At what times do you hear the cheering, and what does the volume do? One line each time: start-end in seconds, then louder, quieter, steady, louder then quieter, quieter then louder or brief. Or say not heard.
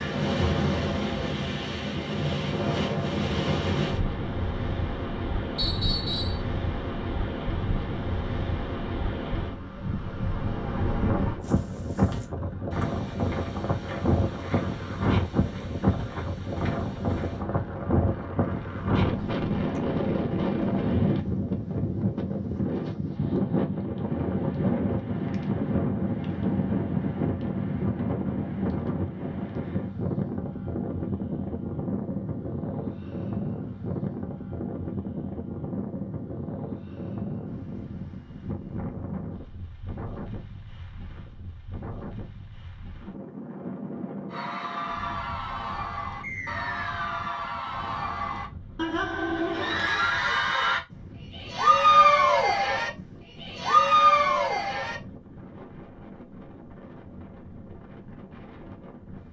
44.3-55.0 louder.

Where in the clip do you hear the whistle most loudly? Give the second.
6 s.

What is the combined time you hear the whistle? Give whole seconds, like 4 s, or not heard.
2 s.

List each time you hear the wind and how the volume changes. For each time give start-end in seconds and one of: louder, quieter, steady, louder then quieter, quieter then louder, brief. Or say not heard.
0.0-59.2 quieter.